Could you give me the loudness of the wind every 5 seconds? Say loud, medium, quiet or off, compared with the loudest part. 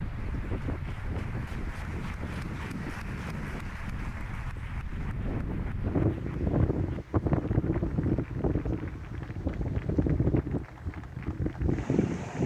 medium, loud, loud.